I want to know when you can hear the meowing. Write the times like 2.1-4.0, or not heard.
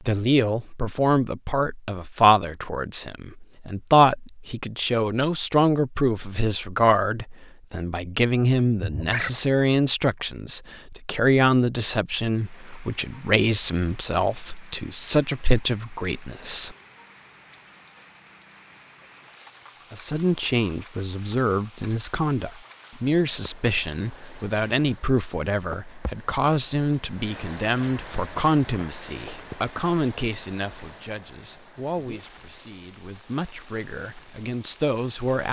8.8-9.3.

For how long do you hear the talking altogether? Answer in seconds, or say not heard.
32 s.